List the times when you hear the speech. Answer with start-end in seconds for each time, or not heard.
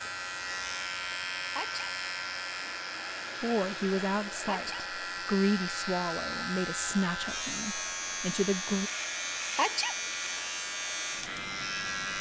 3.4-8.9.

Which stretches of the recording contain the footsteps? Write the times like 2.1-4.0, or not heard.
not heard.